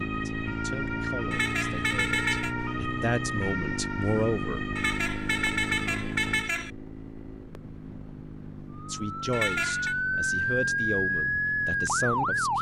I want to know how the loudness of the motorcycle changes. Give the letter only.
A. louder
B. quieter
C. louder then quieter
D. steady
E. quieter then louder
B.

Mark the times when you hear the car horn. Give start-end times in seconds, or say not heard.
1.3-2.5, 4.8-6.7, 9.3-9.9.